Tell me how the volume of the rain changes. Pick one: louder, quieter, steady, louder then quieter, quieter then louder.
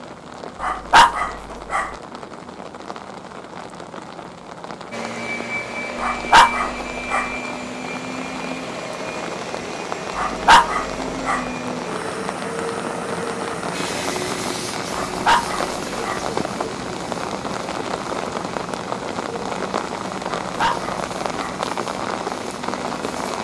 louder.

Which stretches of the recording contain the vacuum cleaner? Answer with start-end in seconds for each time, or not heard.
4.9-23.3.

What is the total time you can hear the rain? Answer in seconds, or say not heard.
23 s.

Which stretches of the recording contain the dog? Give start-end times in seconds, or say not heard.
0.6-1.9, 6.0-7.3, 10.2-11.4, 14.9-16.2, 20.4-21.6.